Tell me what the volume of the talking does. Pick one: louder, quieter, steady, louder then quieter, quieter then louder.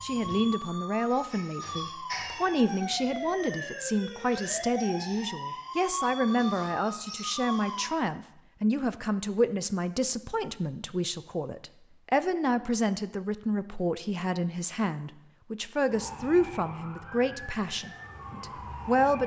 steady.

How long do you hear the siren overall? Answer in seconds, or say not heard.
11 s.